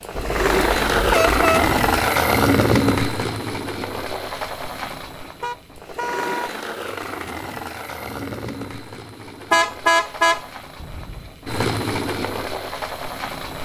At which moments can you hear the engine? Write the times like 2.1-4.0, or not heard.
0.0-13.5.